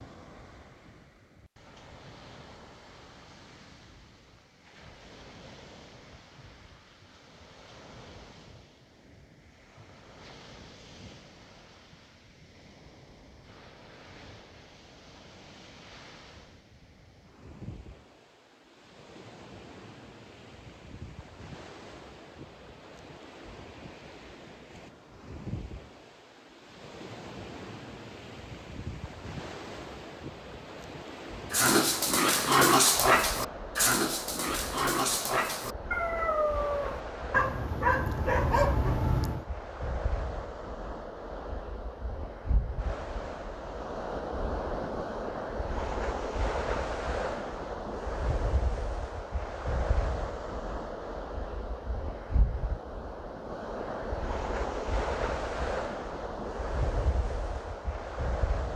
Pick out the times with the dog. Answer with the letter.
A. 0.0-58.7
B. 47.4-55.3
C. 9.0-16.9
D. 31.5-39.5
D.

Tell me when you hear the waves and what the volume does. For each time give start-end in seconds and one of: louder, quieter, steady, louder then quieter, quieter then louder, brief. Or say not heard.
0.0-58.7 louder.